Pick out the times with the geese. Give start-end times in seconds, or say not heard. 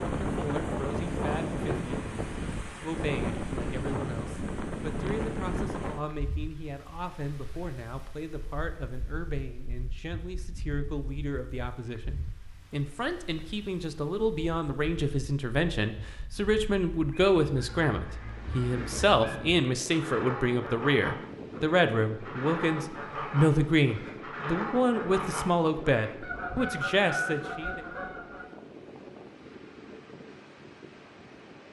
16.9-28.4.